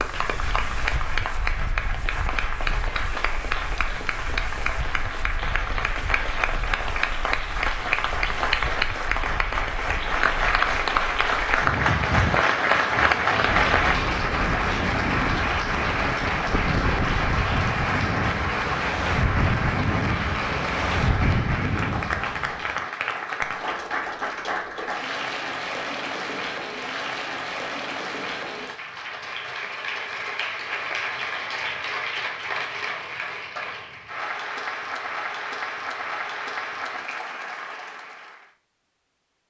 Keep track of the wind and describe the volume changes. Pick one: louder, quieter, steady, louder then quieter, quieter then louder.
louder.